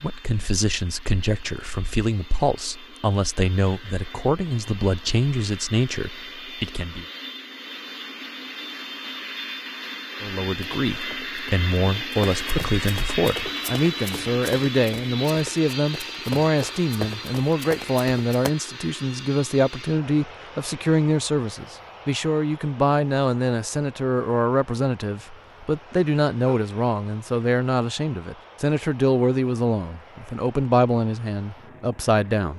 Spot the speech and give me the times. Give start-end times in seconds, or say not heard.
0.0-7.0, 10.2-32.5.